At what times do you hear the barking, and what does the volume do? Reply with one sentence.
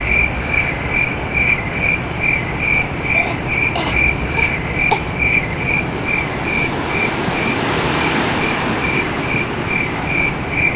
The barking can't be heard in this clip.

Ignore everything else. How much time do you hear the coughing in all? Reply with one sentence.
The coughing can be heard for 2 seconds in total.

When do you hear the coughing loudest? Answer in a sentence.
The volume of the coughing peaks at 5 seconds.